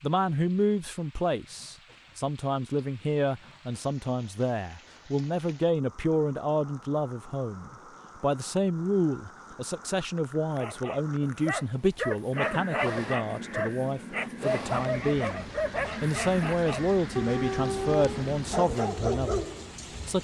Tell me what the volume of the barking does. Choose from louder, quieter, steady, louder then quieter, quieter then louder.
steady.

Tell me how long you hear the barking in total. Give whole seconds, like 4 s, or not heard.
9 s.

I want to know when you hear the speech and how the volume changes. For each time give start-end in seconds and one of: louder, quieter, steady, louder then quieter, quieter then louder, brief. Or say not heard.
0.0-19.4 steady.